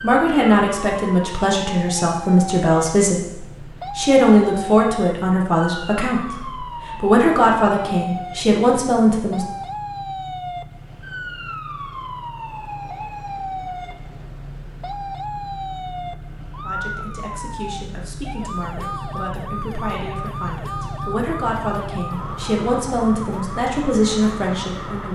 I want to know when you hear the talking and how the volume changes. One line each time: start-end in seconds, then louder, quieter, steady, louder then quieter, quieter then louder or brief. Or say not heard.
0.0-9.4 steady
16.6-25.1 louder.